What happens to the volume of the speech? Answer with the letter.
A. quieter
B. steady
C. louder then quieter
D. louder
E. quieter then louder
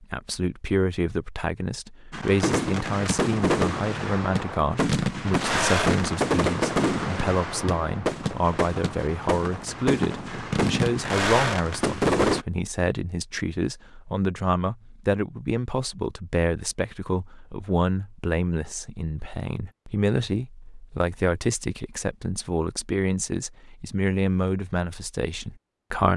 B.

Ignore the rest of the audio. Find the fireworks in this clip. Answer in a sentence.
You can hear the fireworks from 2.1 to 12.4 s.